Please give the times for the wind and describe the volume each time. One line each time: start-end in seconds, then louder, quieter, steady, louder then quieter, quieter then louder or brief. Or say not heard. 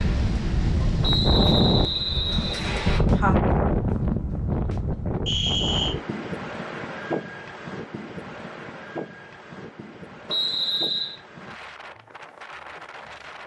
0.0-13.4 quieter.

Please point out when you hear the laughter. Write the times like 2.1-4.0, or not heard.
2.8-3.4.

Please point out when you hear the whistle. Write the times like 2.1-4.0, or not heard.
1.0-3.0, 5.2-6.0, 10.2-11.2.